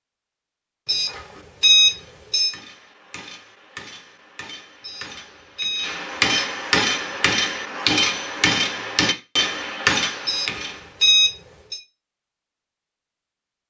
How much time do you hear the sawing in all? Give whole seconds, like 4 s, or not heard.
not heard.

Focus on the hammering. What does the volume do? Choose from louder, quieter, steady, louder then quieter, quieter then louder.
louder.